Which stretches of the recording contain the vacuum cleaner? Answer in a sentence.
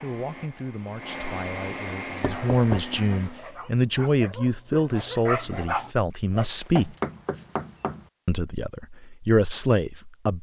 You can hear the vacuum cleaner from 0.0 to 3.4 s.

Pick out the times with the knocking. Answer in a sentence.
You can hear the knocking from 2.2 to 3.0 s and from 6.6 to 8.1 s.